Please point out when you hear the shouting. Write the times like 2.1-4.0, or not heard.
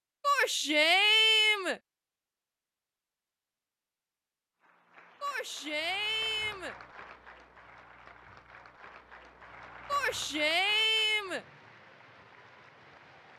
0.2-1.8, 5.2-6.8, 9.8-11.4.